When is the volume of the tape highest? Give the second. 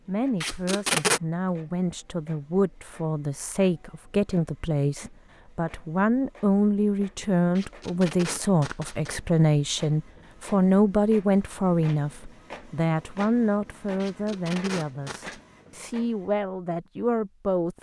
1 s.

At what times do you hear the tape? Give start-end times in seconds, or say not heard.
0.4-1.2, 7.5-9.2, 14.0-15.4.